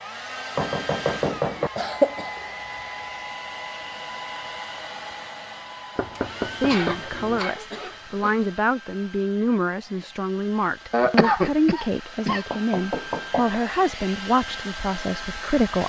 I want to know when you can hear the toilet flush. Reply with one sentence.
You can't hear the toilet flush here.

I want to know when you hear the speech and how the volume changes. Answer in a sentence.
The speech can be heard from 6.6 to 15.8 s, at a steady volume.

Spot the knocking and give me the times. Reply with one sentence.
You can hear the knocking from 0.6 to 1.7 s, from 6.0 to 7.4 s and from 12.5 to 13.6 s.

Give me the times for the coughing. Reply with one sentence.
You can hear the coughing from 1.8 to 2.3 s, from 6.7 to 8.4 s and from 10.9 to 12.4 s.